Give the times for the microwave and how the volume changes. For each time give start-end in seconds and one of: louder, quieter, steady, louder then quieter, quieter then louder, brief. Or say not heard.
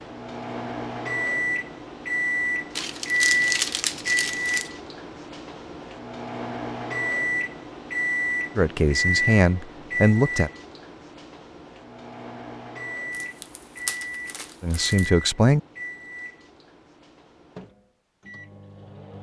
0.0-19.1 quieter.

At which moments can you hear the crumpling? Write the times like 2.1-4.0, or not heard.
2.8-4.7, 13.1-15.1.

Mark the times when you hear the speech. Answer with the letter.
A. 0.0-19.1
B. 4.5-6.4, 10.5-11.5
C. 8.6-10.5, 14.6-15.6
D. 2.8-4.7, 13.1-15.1
C.